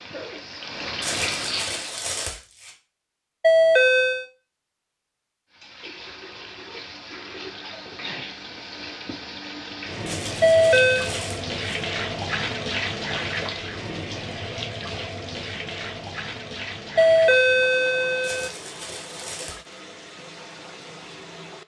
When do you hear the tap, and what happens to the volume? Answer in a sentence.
The tap can be heard briefly from 0.0 to 2.0 s; and from 5.5 to 21.6 s, getting louder then quieter.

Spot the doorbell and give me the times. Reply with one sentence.
The doorbell can be heard from 3.4 to 4.2 s, from 10.4 to 11.1 s and from 16.9 to 18.5 s.